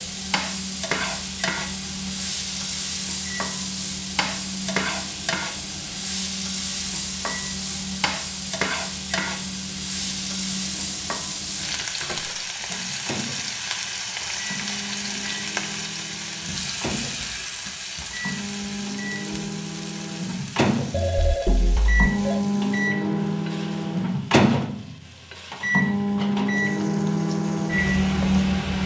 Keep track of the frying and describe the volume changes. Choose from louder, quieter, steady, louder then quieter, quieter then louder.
quieter.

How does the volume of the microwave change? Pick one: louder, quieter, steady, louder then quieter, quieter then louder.
louder.